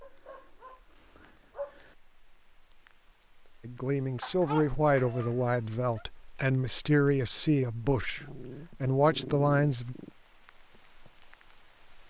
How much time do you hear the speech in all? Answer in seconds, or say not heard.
6 s.